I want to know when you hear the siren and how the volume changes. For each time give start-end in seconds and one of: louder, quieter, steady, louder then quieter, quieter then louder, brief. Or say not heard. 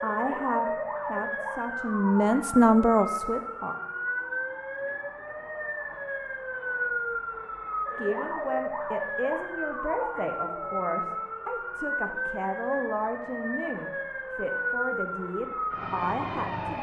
0.0-16.7 steady.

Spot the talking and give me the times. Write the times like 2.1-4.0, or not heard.
0.0-3.8, 8.0-16.7.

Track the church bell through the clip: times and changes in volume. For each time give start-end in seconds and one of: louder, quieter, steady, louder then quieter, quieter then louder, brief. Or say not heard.
not heard.